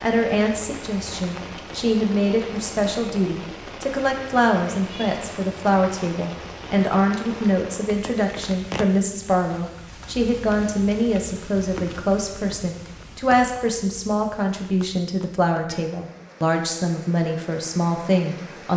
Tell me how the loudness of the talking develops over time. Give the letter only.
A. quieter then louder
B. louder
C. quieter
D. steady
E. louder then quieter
D.